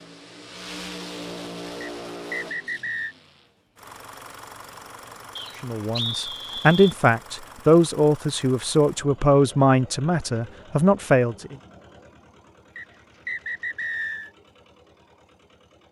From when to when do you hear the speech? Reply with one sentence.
The speech can be heard from 5.6 to 11.6 s.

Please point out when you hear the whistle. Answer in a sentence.
You can hear the whistle from 1.8 to 3.1 s, from 5.3 to 7.0 s and from 12.8 to 14.3 s.